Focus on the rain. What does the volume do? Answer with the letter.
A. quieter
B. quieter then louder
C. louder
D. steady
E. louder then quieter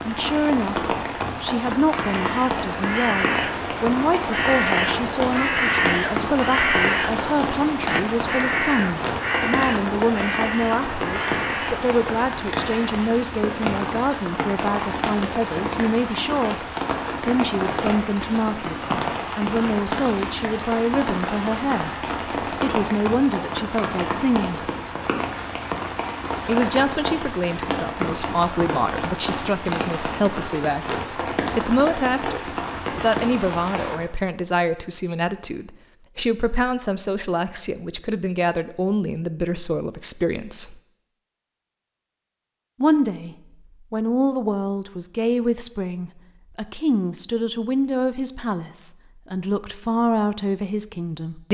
D.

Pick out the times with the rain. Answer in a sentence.
You can hear the rain from 0.0 to 34.0 s.